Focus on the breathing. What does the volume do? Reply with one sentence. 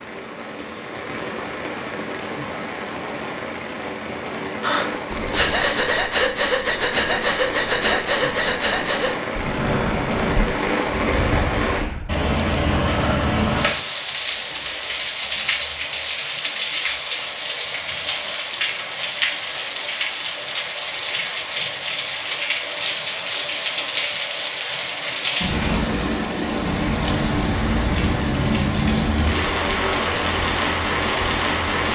The loudness of the breathing goes down.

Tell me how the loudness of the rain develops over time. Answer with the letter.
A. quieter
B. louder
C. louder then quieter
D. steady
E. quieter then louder
B.